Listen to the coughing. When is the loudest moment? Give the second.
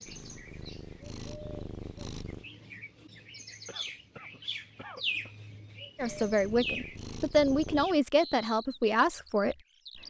5 s.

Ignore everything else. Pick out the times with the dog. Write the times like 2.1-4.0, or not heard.
not heard.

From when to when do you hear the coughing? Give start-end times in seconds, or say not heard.
3.6-5.3.